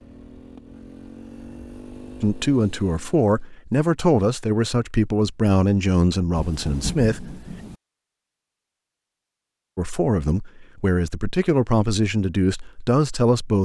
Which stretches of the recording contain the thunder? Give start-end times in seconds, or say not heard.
6.3-7.8.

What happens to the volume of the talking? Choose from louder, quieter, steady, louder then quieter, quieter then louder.
steady.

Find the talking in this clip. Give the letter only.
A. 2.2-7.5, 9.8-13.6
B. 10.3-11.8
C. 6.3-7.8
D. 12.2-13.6
A.